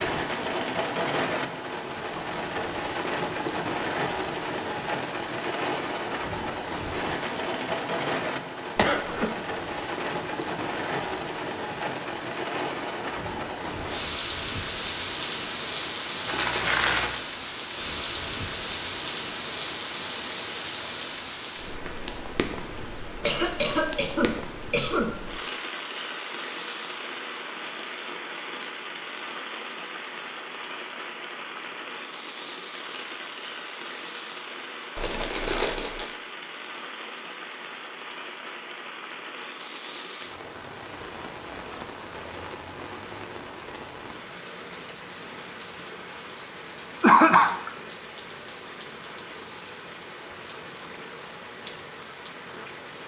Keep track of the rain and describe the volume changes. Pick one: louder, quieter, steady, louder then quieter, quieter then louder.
quieter.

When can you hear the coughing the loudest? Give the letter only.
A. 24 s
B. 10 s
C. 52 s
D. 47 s
D.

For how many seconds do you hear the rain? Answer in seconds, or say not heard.
53 s.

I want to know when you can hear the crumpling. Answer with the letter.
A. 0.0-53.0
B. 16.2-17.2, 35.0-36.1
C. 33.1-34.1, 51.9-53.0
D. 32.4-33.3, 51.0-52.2
B.